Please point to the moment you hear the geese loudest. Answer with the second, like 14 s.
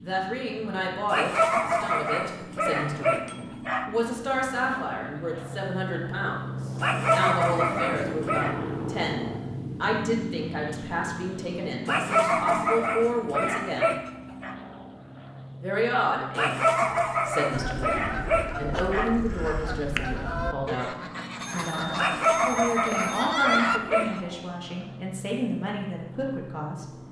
24 s.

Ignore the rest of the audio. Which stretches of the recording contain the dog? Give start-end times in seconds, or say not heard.
1.1-3.9, 6.8-8.6, 11.8-14.6, 16.4-19.2, 21.9-24.2.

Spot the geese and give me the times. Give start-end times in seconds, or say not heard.
17.5-24.2.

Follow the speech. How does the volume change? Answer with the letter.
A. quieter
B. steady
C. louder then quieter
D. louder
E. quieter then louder
B.